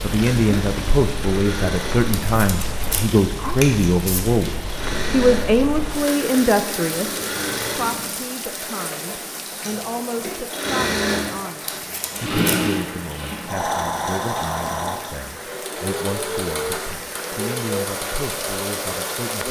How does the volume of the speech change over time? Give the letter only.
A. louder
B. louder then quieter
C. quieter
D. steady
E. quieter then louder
C.